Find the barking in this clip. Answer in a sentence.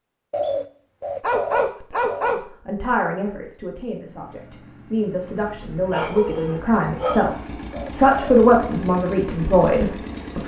You can hear the barking from 1.2 to 2.5 s and from 5.4 to 7.2 s.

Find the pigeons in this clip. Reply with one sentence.
You can hear the pigeons from 0.3 to 2.2 s and from 7.0 to 8.4 s.